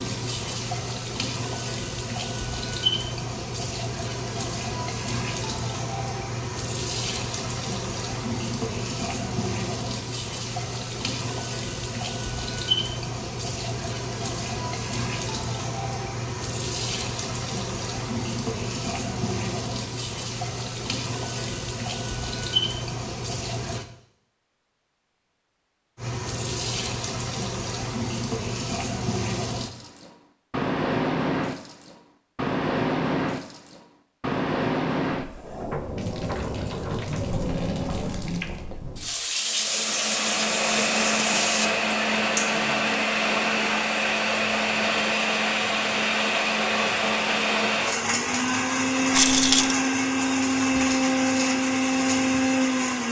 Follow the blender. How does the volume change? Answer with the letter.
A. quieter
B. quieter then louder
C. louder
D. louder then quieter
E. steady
E.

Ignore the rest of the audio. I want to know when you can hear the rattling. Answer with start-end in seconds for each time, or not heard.
49.1-49.8.